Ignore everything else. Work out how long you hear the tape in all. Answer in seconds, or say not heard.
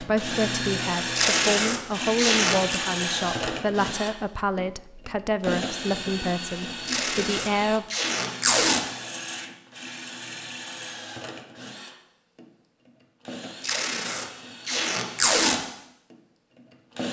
6 s.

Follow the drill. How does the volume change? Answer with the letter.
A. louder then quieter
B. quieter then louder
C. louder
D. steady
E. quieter
E.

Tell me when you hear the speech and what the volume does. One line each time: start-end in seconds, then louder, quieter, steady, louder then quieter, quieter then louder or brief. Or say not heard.
0.0-7.8 steady.